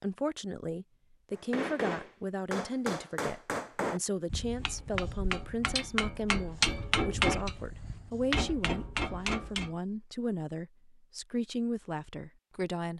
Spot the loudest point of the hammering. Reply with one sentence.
The volume of the hammering peaks at 7 seconds.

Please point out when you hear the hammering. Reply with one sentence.
The hammering can be heard from 1.3 to 9.8 s.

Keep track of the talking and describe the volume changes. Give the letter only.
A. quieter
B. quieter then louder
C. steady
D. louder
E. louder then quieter
C.